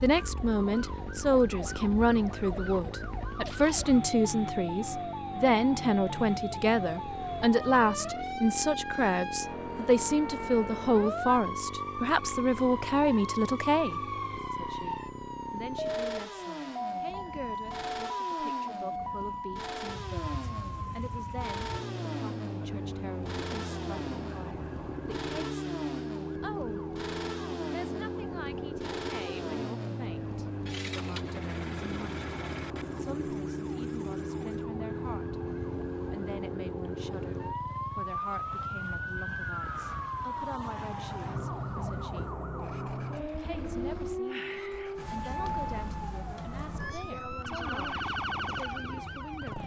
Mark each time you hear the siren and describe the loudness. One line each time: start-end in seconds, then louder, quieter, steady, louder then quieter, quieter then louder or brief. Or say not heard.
0.0-49.6 steady.